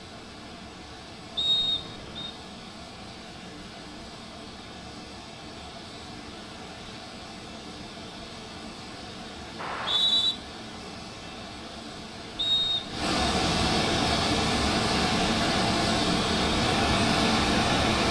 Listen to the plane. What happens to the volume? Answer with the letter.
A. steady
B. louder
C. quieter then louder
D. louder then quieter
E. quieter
B.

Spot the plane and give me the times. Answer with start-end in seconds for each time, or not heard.
0.0-18.0.